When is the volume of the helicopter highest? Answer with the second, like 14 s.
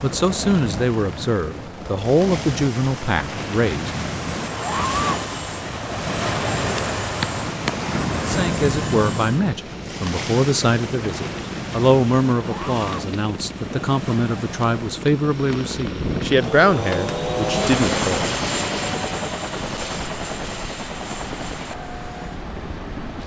18 s.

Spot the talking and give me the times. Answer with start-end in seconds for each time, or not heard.
0.0-3.9, 8.2-18.4.